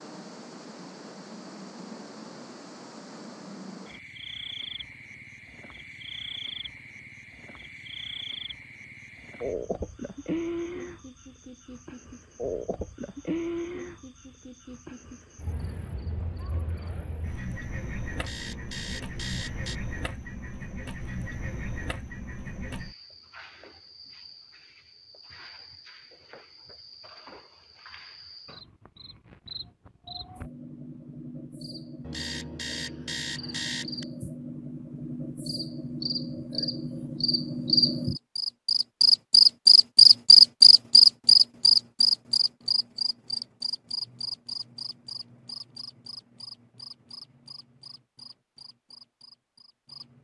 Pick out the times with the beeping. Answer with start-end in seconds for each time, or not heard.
18.1-19.8, 32.0-34.0.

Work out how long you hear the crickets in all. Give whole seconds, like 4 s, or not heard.
50 s.